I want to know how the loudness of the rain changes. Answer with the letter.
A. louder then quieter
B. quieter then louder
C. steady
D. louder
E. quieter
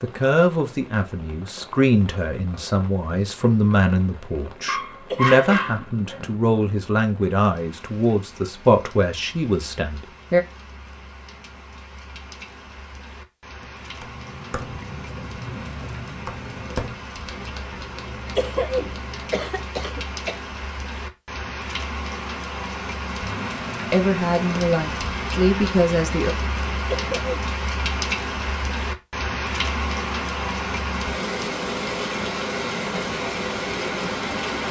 D.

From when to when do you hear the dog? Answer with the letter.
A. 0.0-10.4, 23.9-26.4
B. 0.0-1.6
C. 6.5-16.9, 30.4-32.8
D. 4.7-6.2
D.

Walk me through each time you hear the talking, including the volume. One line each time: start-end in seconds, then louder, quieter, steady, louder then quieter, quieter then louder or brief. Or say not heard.
0.0-10.4 steady
23.9-26.4 brief.